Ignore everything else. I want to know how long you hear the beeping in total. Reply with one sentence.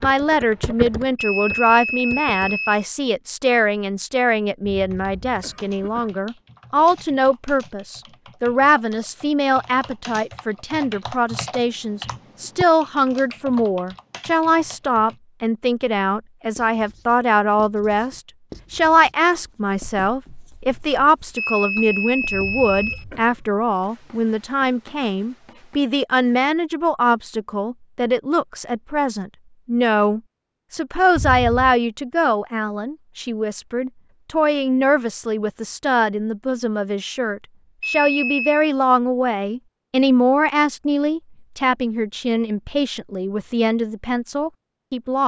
The beeping can be heard for 4 seconds in total.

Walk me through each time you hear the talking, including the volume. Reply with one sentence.
You can hear the talking from 0.0 to 45.2 s, at a steady volume.